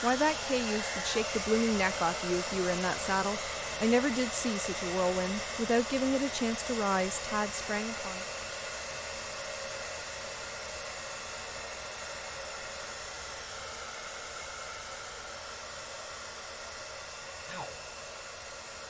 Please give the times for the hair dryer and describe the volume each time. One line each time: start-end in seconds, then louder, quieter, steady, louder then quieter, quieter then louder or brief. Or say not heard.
0.0-18.8 quieter.